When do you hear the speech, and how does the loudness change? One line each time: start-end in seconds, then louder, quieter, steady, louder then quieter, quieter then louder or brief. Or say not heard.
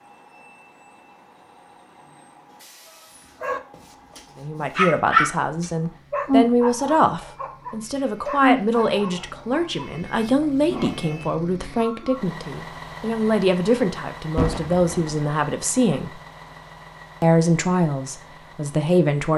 4.3-16.2 steady
17.2-19.3 brief.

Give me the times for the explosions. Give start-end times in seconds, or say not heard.
14.3-15.2.